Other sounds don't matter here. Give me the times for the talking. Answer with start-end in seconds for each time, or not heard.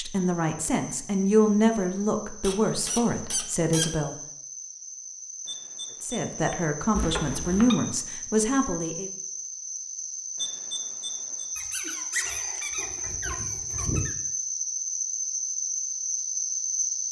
0.0-4.2, 6.0-9.1.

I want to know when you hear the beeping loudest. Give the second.
11 s.